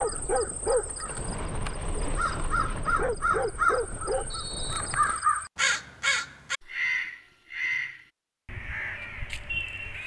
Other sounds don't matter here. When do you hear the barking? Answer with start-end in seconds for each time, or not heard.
0.0-5.2.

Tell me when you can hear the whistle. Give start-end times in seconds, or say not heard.
4.3-5.2.